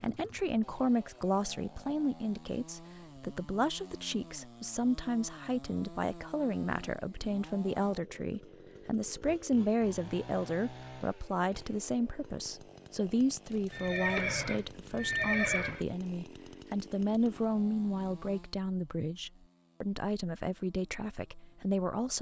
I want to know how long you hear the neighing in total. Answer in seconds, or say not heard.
2 s.